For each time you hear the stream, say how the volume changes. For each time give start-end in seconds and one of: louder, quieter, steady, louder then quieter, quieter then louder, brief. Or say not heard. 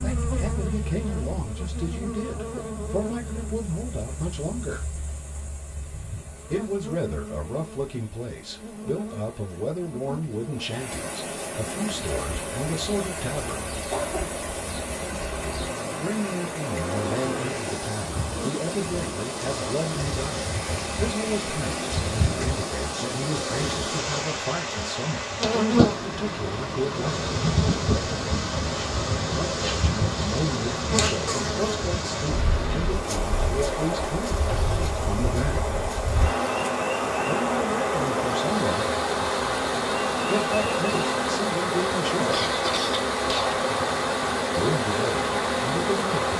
0.0-46.3 louder.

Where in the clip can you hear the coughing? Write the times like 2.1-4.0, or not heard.
13.8-14.4, 42.2-43.6.